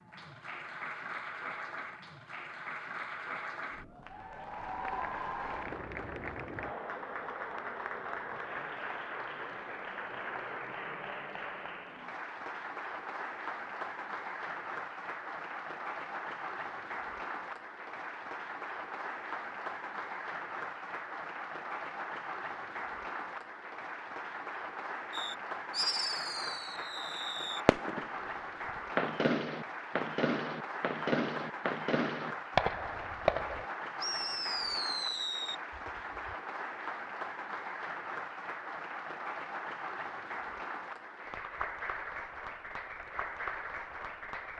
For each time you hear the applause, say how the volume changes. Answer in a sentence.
You can hear the applause from 0.0 to 44.5 s, at a steady volume.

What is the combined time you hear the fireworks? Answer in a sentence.
You can hear the fireworks for 11 seconds altogether.